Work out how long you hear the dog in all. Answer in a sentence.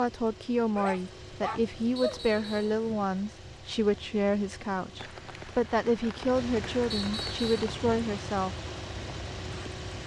The dog can be heard for 2 seconds in total.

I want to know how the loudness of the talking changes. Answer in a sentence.
The loudness of the talking stays about the same.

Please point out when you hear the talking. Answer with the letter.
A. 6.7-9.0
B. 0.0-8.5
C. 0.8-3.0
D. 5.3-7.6
B.